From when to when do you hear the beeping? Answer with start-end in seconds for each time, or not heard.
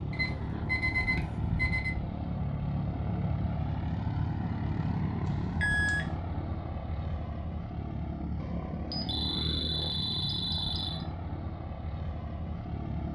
0.1-1.9, 5.2-6.0, 8.9-11.1.